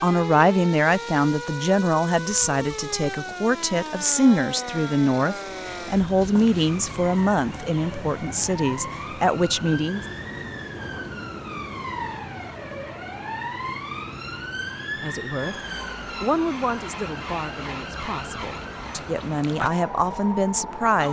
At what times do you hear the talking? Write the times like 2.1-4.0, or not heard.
0.0-10.1, 15.0-21.0.